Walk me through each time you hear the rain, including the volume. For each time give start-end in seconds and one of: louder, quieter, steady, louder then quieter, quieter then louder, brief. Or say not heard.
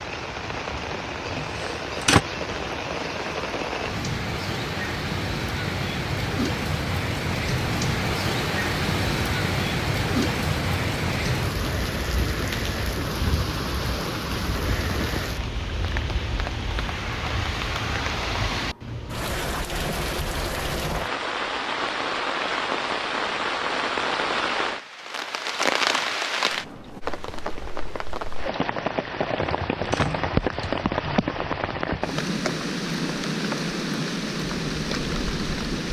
0.0-35.8 steady.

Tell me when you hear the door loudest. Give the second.
2 s.